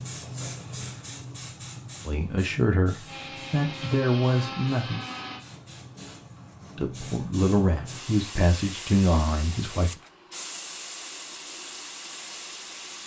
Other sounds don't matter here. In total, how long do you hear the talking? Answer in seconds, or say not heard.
6 s.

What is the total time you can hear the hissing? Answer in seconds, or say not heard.
13 s.